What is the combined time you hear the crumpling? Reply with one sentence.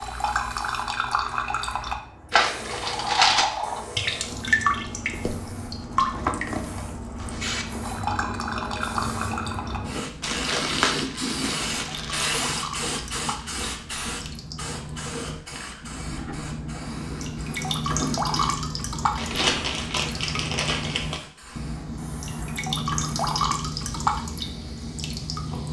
You can hear the crumpling for 5 seconds altogether.